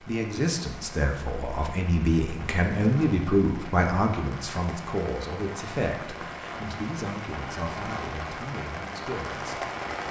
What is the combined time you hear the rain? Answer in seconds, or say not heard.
10 s.